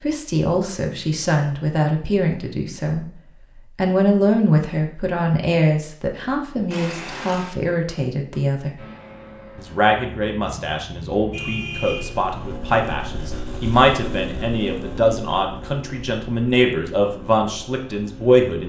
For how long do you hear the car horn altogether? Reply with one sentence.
The car horn can be heard for 2 seconds in total.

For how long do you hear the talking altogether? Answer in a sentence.
You can hear the talking for 18 seconds altogether.